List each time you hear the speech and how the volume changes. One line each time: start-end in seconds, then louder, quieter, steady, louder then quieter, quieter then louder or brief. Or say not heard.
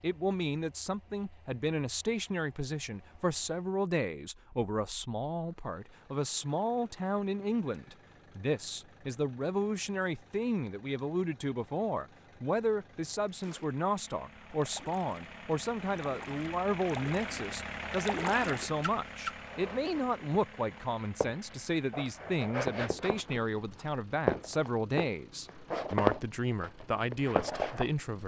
0.0-28.2 steady.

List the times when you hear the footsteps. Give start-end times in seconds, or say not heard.
19.3-27.9.